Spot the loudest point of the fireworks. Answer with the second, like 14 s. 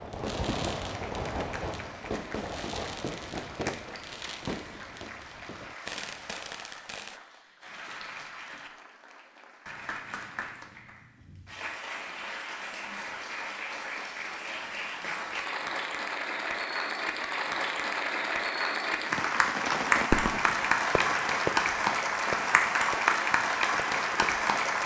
20 s.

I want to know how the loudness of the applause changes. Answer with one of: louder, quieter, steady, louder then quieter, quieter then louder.
louder.